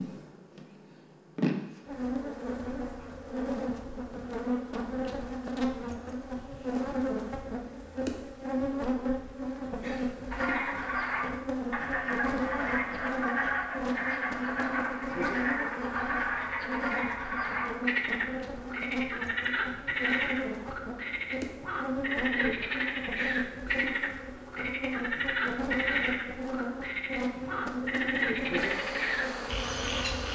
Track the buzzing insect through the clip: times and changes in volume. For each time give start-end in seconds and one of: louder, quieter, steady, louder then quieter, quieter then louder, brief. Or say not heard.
0.0-30.3 steady.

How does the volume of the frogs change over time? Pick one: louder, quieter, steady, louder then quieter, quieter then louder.
steady.